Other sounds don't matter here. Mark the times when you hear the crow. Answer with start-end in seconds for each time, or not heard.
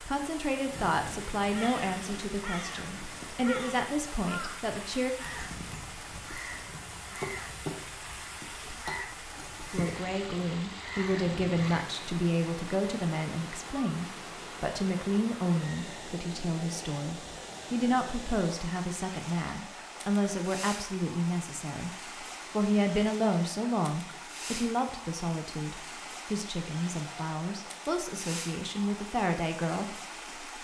0.7-11.8.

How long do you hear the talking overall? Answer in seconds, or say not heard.
26 s.